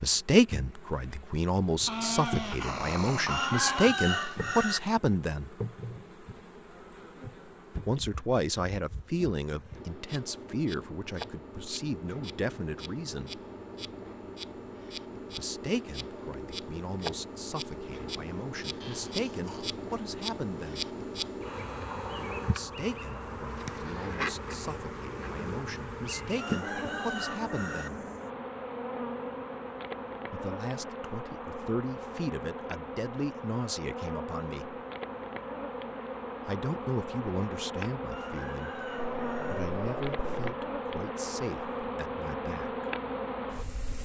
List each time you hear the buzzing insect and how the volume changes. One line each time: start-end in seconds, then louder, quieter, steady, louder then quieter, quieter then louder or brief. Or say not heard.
0.0-44.0 louder.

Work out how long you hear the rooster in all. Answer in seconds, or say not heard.
5 s.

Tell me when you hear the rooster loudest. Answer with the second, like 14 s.
4 s.